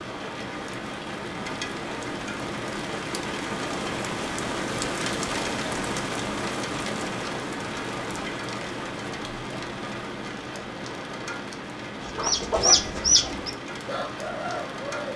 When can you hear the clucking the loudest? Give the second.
13 s.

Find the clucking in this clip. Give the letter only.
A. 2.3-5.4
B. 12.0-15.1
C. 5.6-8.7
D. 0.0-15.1
B.